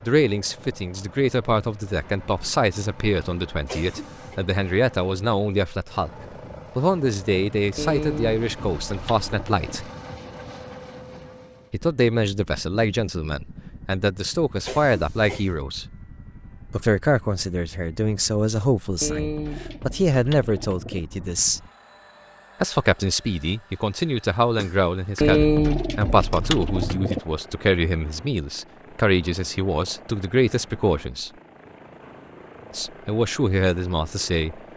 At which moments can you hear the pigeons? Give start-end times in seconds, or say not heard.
7.8-9.8, 19.0-21.0, 25.2-27.2.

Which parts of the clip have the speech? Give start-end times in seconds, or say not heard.
0.0-6.1, 6.8-9.9, 11.7-15.8, 16.7-21.6, 22.6-31.3, 32.7-34.6.